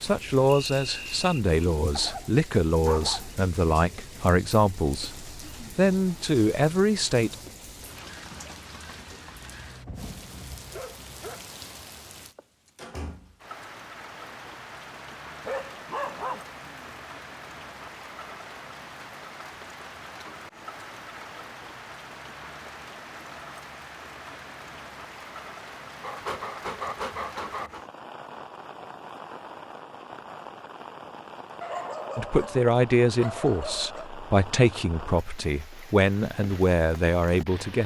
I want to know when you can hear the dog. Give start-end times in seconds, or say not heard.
1.9-3.4, 9.3-11.4, 15.4-17.0, 26.0-27.9, 31.6-34.1.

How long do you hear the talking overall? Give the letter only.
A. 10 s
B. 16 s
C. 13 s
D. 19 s
C.